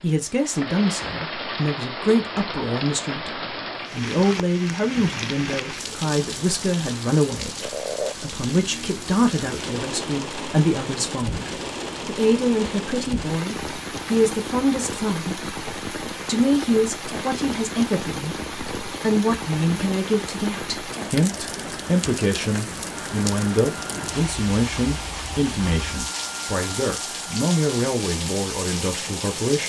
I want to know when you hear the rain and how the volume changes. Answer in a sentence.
You can hear the rain from 0.0 to 29.6 s, at a steady volume.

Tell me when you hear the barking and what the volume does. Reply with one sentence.
You can't hear the barking here.